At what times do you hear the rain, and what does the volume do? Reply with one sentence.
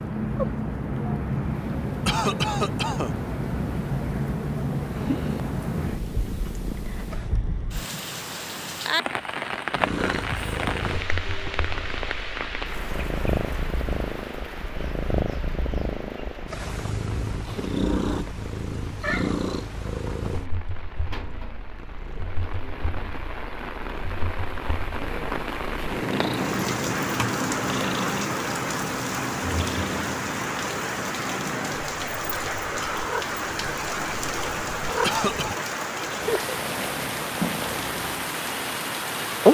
The rain can be heard from 0.0 to 39.4 s, getting quieter then louder.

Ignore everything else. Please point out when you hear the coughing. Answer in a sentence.
You can hear the coughing from 2.0 to 3.1 s and from 35.0 to 35.6 s.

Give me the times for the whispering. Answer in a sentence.
The whispering can't be heard in this clip.